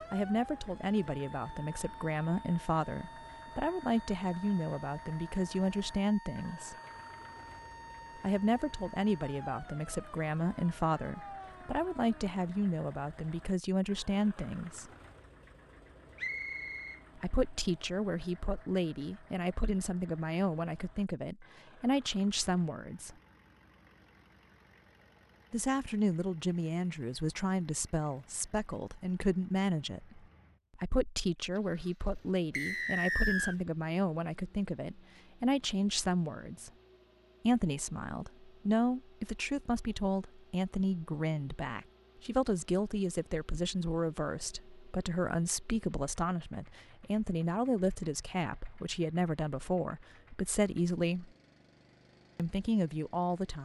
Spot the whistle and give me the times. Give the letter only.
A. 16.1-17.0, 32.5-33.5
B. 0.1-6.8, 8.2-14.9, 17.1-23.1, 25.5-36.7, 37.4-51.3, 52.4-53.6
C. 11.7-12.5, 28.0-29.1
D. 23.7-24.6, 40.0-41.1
A.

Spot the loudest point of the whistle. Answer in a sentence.
The volume of the whistle peaks at 33 seconds.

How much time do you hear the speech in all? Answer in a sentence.
The speech can be heard for 46 seconds in total.